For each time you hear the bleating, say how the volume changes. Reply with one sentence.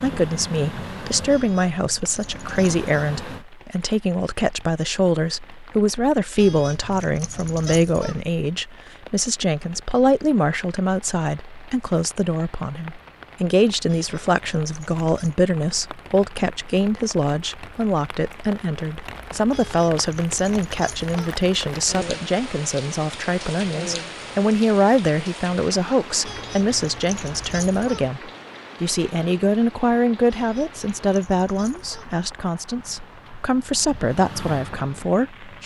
You can't hear the bleating here.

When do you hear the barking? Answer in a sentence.
You can't hear the barking here.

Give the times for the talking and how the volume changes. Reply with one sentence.
The talking can be heard from 0.0 to 35.6 s, at a steady volume.